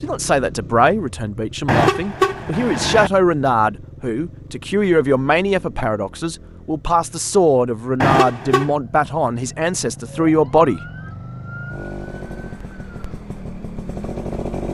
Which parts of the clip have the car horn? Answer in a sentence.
You can hear the car horn from 1.6 to 3.1 s and from 8.0 to 8.7 s.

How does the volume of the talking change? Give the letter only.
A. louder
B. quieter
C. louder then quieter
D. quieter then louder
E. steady
E.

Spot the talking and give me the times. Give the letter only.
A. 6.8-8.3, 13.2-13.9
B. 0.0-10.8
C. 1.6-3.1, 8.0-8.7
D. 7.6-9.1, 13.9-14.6
B.